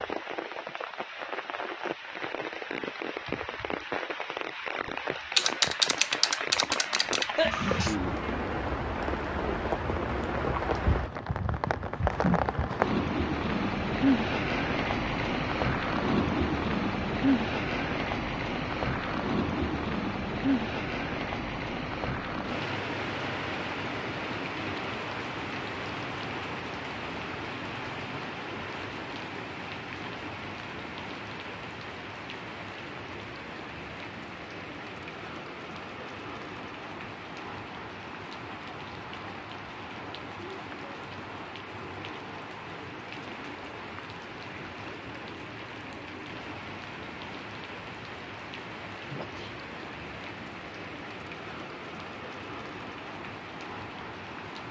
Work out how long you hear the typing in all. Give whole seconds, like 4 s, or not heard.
2 s.